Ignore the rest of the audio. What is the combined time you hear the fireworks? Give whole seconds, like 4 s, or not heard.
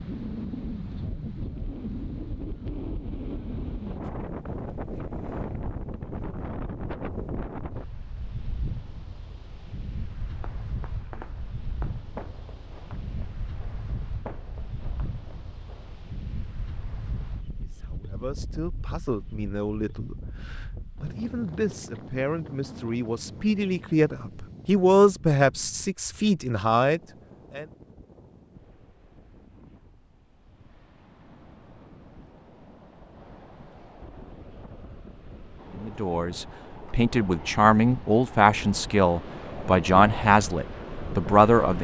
6 s.